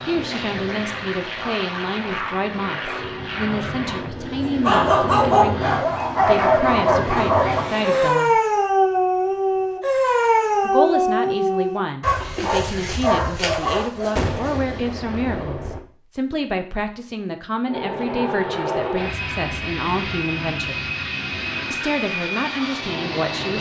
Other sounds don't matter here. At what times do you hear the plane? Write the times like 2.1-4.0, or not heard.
0.0-8.2, 17.6-23.5.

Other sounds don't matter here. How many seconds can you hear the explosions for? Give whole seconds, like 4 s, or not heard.
2 s.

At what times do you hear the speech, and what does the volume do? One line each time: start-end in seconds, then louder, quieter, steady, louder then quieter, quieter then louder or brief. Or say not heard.
0.0-8.4 steady
10.6-20.8 steady
21.7-23.5 brief.